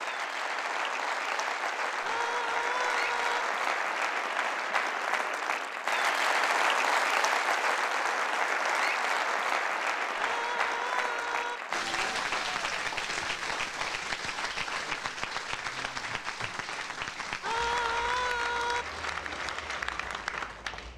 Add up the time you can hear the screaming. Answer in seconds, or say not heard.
4 s.